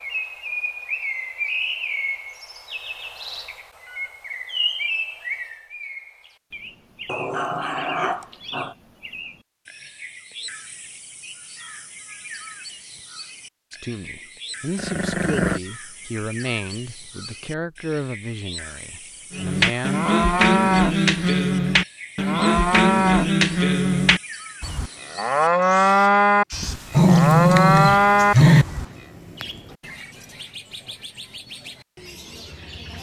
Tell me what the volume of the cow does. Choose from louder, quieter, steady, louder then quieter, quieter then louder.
steady.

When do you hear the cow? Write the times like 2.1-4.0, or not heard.
19.3-28.9.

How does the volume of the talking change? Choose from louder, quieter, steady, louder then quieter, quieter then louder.
quieter.